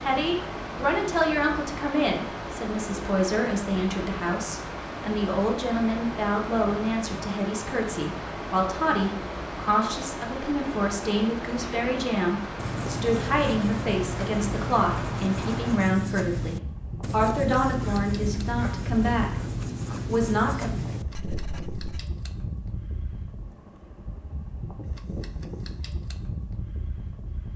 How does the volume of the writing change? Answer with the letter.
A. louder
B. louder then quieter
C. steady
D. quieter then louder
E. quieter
C.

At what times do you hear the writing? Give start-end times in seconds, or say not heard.
12.6-22.1.